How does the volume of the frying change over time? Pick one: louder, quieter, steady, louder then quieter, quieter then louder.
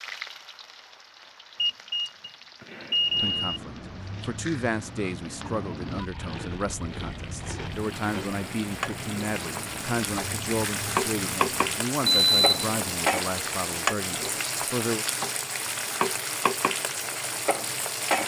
louder.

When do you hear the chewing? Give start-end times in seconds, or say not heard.
3.0-11.8.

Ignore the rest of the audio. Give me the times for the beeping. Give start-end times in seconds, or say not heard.
1.6-3.4, 12.1-12.9.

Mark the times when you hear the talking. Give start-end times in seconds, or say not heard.
3.2-15.1.